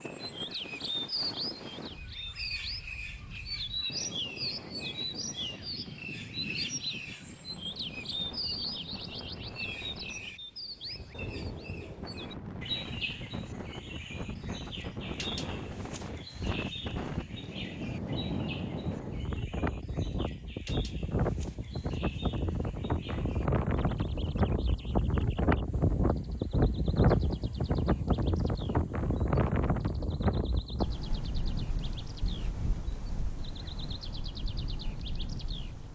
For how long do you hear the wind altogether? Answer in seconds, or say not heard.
36 s.